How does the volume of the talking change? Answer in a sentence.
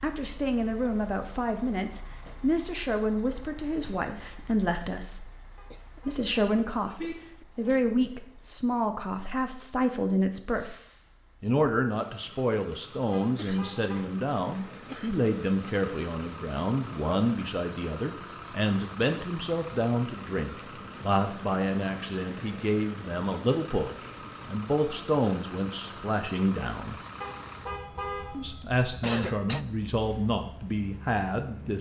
The volume of the talking stays about the same.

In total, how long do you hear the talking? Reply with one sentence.
The talking can be heard for 29 seconds in total.